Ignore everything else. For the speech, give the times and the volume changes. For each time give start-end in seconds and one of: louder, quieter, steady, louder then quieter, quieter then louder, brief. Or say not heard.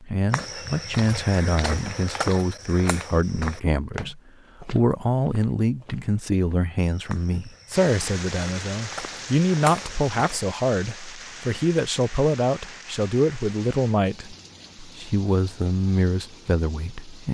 0.0-17.2 steady.